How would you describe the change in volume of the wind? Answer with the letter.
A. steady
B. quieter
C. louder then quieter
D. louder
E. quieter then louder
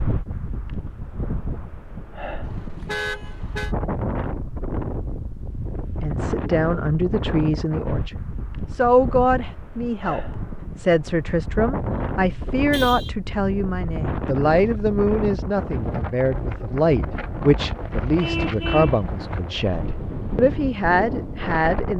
A.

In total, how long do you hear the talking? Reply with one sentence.
The talking can be heard for 15 seconds in total.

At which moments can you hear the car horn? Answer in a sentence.
The car horn can be heard from 2.4 to 3.8 s, from 12.7 to 13.1 s and from 18.2 to 19.0 s.